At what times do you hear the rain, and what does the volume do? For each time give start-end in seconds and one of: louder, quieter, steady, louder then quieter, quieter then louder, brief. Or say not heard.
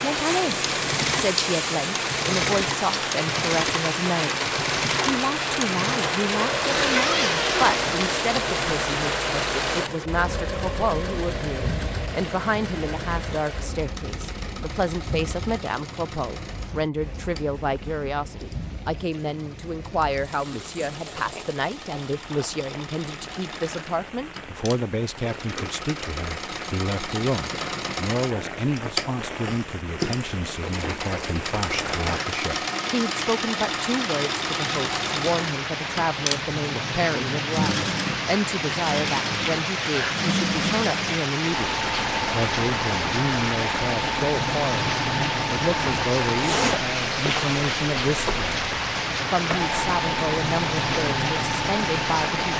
0.0-52.5 quieter then louder.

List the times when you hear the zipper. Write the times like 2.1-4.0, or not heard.
6.6-8.0, 46.3-47.8.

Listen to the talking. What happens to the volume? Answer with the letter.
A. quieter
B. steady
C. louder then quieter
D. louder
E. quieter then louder
B.